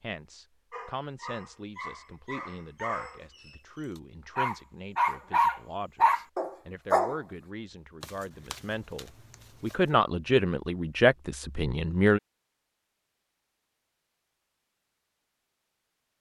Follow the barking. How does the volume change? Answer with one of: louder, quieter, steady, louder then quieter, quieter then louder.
louder.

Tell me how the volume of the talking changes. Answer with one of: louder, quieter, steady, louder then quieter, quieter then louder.
louder.